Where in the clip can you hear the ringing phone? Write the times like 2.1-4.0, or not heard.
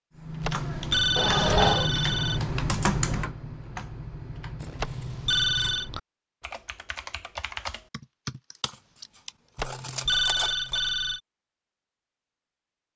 0.4-2.5, 4.8-5.9, 9.6-11.2.